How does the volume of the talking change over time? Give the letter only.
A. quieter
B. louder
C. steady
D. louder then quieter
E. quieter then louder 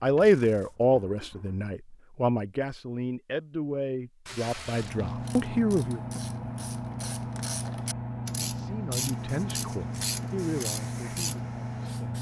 A.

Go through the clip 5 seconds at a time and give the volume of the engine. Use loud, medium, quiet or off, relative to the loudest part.
quiet, loud, loud.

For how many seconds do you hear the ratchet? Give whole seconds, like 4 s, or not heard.
6 s.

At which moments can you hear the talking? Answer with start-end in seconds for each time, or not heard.
0.0-6.0, 8.3-11.8.